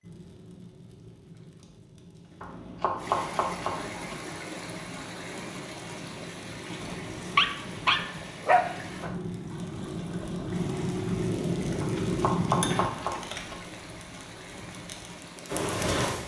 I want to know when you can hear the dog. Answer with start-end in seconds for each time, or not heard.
6.8-9.2.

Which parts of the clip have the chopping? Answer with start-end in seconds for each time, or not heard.
2.4-4.2, 12.0-13.6.